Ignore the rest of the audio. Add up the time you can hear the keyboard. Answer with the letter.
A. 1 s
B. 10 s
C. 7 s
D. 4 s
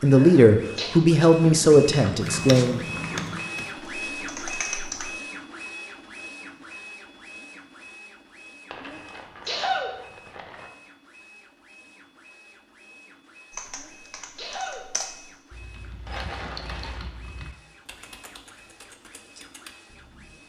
B.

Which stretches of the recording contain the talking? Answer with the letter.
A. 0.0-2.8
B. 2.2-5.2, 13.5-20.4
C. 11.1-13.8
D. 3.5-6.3
A.